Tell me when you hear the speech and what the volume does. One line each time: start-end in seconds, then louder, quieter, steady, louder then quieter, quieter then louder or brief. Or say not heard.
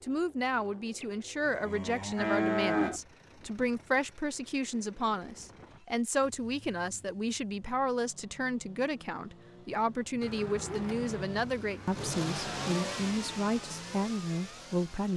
0.0-15.1 steady.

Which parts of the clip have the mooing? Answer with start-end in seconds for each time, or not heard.
1.0-3.0, 10.2-12.8.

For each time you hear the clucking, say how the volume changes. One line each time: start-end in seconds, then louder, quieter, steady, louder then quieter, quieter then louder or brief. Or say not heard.
not heard.